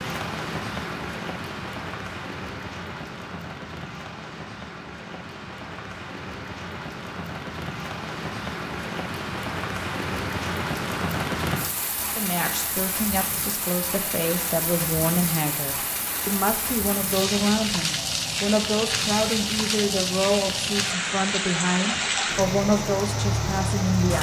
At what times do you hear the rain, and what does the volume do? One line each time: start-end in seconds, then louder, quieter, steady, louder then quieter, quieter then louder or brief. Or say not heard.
0.0-24.1 louder.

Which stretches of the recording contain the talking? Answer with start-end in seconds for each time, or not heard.
12.0-24.1.